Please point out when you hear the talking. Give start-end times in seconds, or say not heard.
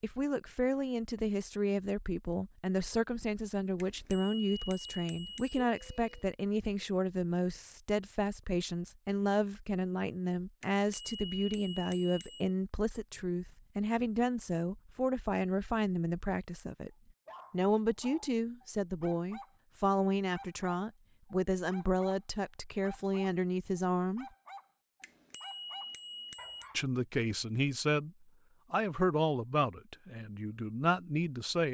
0.0-16.9, 17.5-24.2, 26.8-28.1, 28.7-31.6.